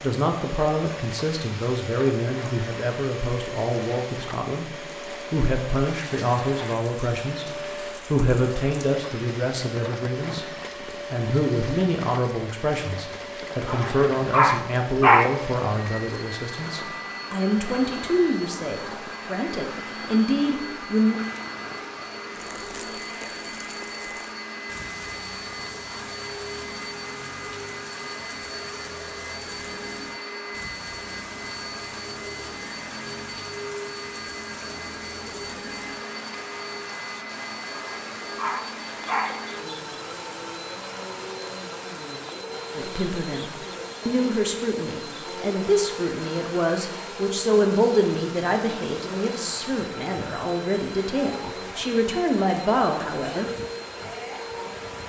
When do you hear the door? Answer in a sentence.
The door can't be heard in this clip.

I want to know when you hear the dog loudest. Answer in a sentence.
The volume of the dog peaks at 15 seconds.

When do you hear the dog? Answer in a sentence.
You can hear the dog from 13.7 to 15.3 s and from 37.7 to 39.4 s.